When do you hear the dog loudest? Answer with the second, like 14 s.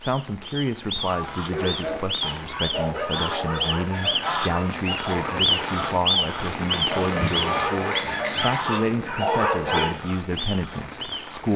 9 s.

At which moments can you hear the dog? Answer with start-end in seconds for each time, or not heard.
1.5-10.0.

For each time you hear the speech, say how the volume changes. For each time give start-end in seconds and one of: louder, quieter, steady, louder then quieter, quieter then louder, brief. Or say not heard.
0.0-11.5 steady.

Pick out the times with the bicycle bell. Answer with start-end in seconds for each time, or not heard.
7.1-8.7.